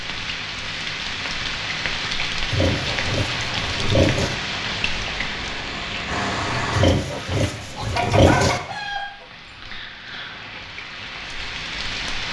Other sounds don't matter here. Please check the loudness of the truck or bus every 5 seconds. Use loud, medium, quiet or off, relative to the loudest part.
medium, loud, off.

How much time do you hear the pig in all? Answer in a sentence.
You can hear the pig for 4 seconds altogether.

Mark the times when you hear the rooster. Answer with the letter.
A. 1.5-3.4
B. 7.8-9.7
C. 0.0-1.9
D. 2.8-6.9
B.